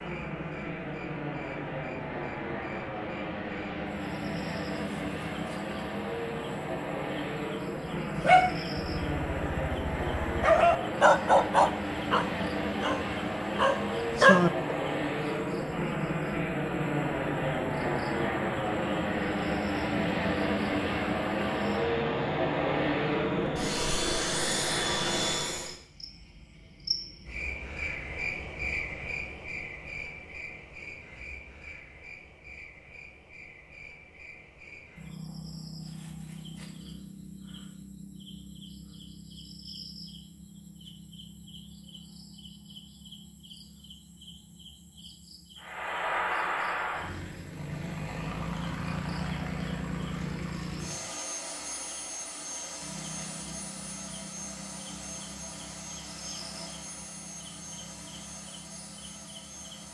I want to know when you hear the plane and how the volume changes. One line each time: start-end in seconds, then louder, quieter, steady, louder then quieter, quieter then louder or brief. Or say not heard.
0.0-25.8 louder
45.6-59.8 quieter.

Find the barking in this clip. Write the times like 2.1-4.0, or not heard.
8.2-14.5.